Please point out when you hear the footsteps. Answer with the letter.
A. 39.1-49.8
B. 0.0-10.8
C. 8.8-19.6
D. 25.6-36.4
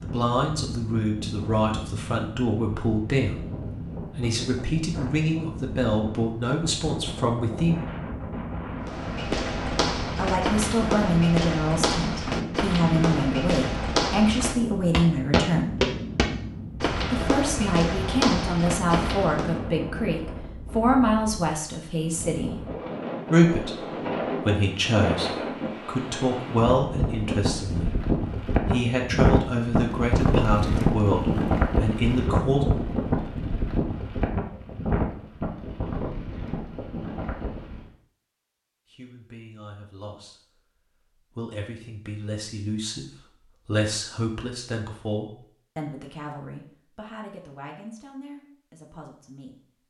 C.